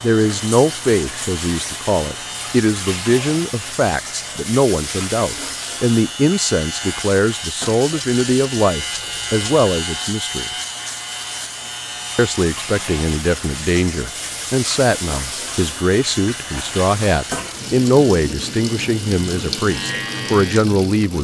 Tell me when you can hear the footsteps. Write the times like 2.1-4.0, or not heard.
not heard.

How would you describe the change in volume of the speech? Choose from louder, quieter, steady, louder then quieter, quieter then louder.
steady.